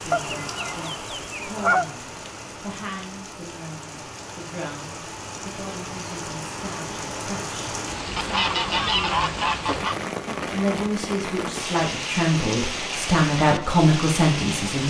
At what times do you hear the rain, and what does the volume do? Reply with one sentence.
You can hear the rain from 0.0 to 14.8 s, getting louder.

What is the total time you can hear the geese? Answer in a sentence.
The geese can be heard for 4 seconds in total.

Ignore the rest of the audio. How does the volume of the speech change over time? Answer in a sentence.
The loudness of the speech goes up.